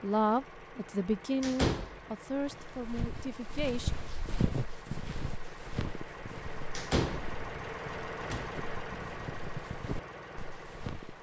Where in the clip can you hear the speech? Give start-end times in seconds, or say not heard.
0.0-3.9.